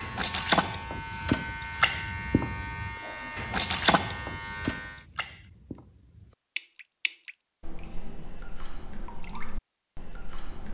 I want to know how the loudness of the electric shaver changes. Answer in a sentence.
The loudness of the electric shaver stays about the same.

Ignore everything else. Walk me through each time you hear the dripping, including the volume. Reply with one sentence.
The dripping can be heard from 0.0 to 10.6 s, getting quieter.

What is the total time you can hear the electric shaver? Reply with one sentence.
The electric shaver can be heard for 5 seconds in total.